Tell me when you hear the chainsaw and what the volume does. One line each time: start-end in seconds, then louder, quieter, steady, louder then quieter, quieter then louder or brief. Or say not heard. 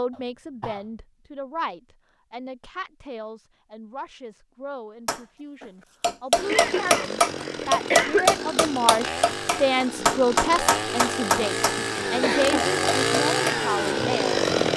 6.3-14.7 louder.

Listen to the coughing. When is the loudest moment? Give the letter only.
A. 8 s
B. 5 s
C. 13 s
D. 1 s
A.